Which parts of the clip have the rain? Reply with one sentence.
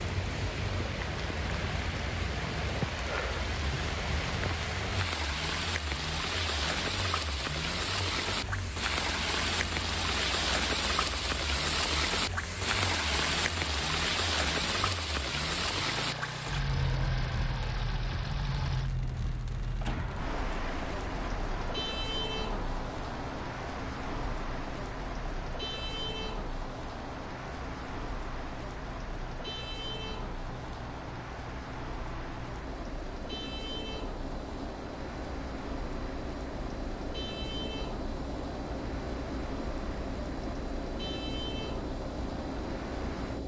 You can hear the rain from 0.0 to 43.4 s.